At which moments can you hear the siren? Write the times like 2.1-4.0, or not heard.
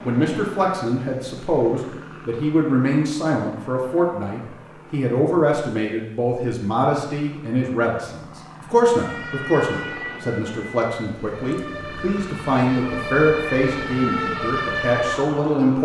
8.9-15.8.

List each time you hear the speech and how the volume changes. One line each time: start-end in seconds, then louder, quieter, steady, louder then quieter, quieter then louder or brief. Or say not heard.
0.0-15.8 steady.